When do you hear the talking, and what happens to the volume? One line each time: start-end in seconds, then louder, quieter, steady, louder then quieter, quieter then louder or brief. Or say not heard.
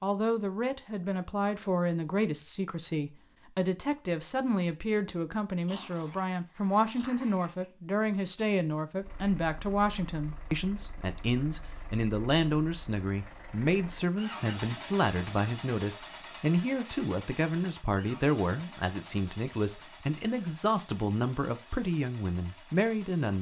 0.0-23.3 steady.